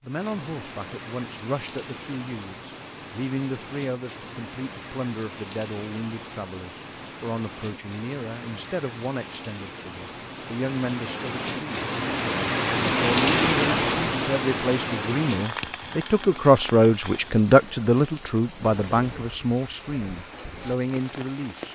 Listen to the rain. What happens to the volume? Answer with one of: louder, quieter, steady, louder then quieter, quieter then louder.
louder then quieter.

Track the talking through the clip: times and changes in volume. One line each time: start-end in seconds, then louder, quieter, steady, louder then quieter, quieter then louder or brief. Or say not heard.
0.0-11.8 steady
12.8-21.7 louder then quieter.